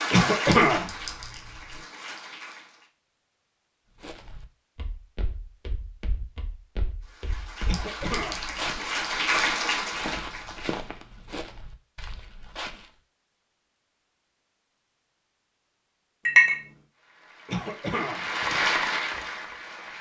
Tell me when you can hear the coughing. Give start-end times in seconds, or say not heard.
0.1-0.9, 7.7-8.4, 17.4-18.2.